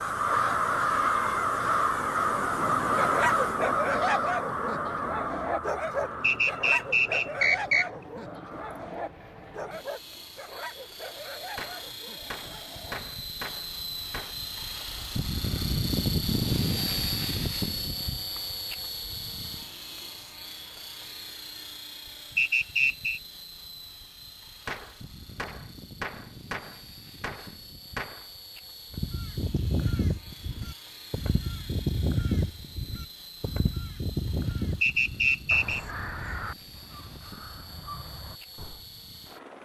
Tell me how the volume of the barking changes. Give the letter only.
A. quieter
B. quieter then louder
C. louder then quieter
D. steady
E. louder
A.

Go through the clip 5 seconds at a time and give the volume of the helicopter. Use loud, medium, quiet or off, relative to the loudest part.
quiet, quiet, medium, loud, quiet, quiet, quiet, quiet.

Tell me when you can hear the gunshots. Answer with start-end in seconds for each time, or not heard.
11.6-14.3, 24.6-28.3.